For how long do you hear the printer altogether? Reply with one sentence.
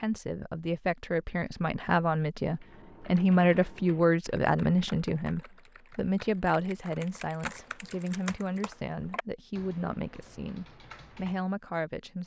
You can't hear the printer here.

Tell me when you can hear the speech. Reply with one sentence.
You can hear the speech from 0.0 to 12.2 s.